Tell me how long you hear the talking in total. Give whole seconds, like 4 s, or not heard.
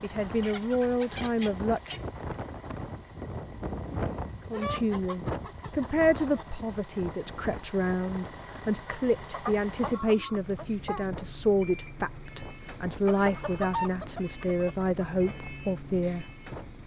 14 s.